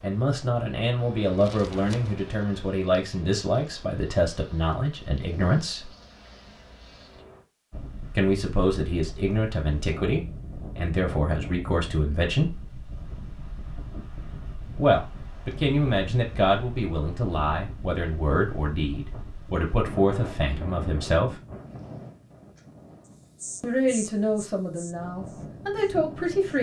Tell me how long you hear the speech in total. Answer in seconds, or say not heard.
20 s.